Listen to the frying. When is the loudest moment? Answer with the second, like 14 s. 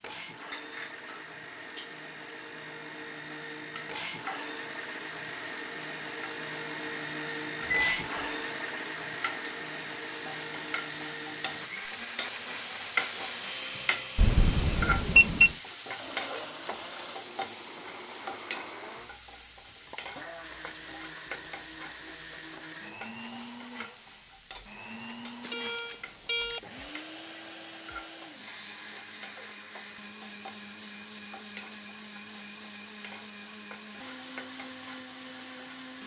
13 s.